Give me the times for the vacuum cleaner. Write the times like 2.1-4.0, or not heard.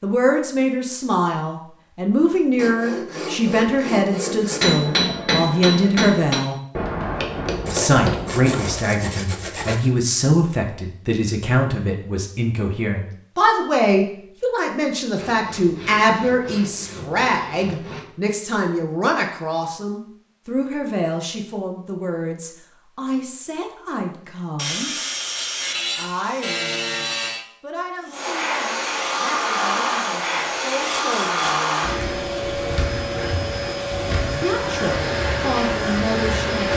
28.1-36.7.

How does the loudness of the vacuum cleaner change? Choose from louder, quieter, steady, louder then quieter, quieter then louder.
steady.